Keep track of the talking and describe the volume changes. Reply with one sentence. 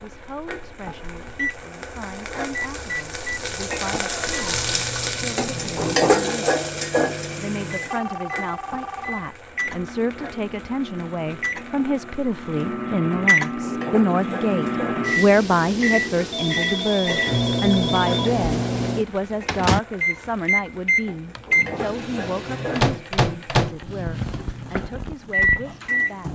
The loudness of the talking goes up, then down.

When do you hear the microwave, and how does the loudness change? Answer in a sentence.
The microwave can be heard from 0.0 to 26.2 s, getting louder.